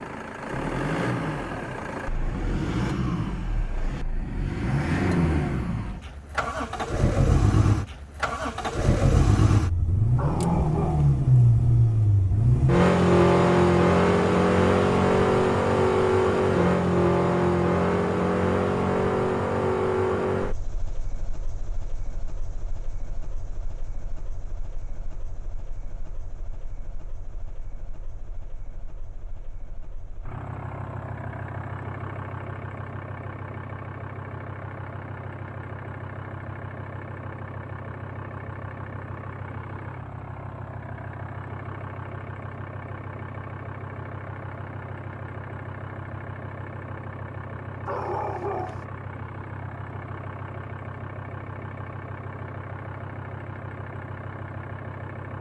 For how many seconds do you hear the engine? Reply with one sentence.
You can hear the engine for 55 seconds altogether.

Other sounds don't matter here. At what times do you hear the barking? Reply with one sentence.
You can hear the barking from 10.2 to 11.2 s and from 47.9 to 48.9 s.